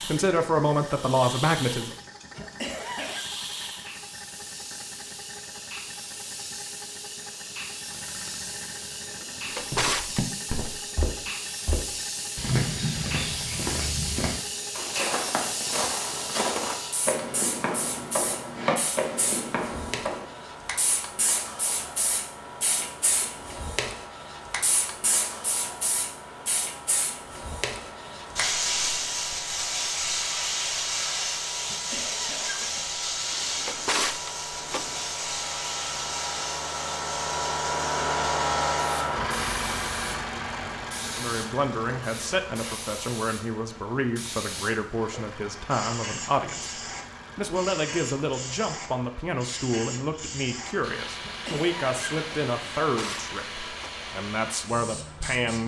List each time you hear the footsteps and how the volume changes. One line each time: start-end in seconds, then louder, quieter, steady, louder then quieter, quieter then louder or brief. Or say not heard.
9.7-20.4 steady.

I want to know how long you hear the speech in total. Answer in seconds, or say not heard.
16 s.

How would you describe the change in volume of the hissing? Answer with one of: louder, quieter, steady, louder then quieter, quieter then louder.
louder then quieter.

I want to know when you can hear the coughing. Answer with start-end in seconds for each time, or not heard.
2.3-3.2, 31.6-32.9, 51.2-52.5.